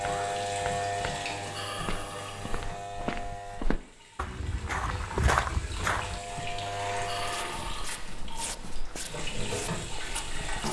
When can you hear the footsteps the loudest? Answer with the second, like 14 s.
5 s.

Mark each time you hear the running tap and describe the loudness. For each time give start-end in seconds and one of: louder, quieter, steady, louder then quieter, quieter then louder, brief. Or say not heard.
0.0-10.6 quieter then louder.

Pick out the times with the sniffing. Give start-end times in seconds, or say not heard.
1.4-2.6, 7.0-8.0.